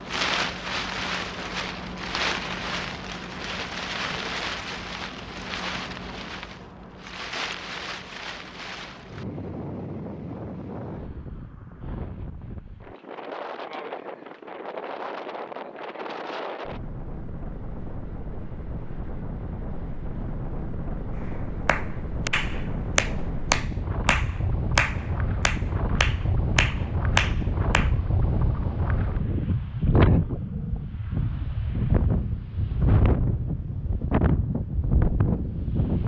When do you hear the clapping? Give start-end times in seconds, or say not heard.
21.6-27.9.